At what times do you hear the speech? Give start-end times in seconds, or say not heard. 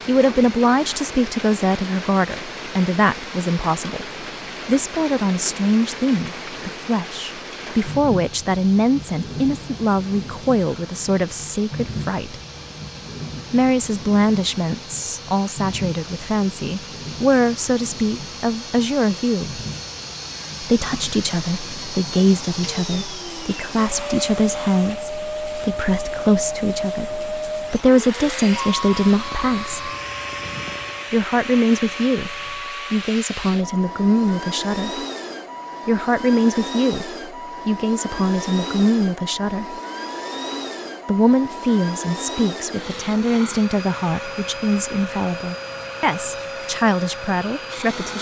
0.1-12.3, 13.5-19.6, 20.6-29.9, 31.1-35.0, 35.9-39.8, 41.0-48.1.